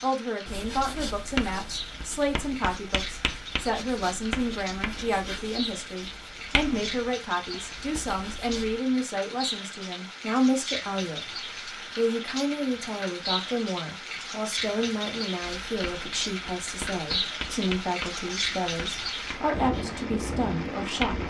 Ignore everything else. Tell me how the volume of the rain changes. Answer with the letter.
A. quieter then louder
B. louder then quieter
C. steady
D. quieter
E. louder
E.